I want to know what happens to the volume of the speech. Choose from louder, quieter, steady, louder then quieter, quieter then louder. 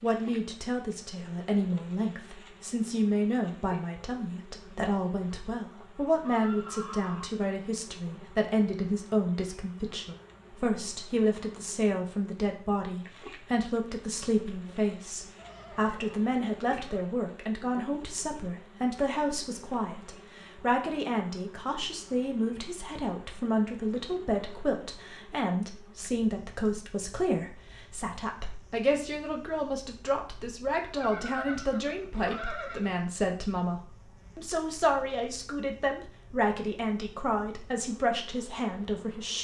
steady.